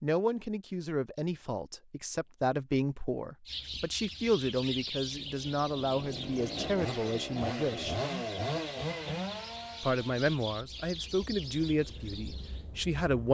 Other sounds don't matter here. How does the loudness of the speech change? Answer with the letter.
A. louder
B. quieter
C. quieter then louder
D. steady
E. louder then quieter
D.